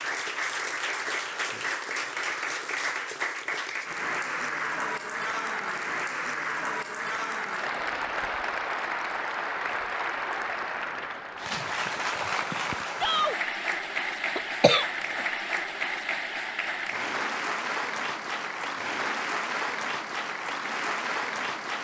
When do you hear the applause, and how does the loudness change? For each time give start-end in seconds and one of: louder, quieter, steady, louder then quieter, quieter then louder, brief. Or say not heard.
0.0-21.7 steady.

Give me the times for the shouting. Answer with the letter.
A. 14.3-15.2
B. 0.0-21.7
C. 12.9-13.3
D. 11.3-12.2
C.